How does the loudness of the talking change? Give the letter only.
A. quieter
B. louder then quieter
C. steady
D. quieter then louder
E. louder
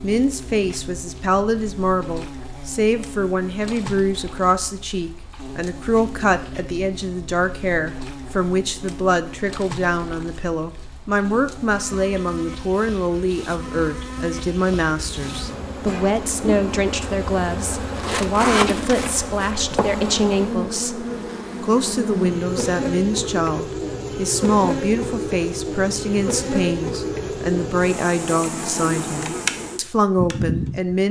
C.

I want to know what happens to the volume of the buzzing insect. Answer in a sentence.
The loudness of the buzzing insect goes up.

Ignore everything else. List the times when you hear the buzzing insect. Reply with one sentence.
The buzzing insect can be heard from 0.0 to 31.0 s.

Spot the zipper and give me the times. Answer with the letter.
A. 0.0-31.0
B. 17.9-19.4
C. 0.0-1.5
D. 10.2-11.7
B.